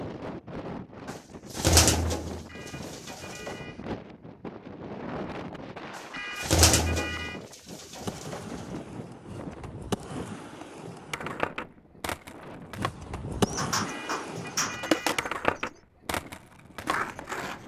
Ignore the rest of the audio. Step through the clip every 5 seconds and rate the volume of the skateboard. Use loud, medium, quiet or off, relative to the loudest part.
off, medium, loud, loud.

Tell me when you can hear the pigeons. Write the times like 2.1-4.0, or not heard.
1.1-3.5, 5.9-8.4, 13.4-15.8.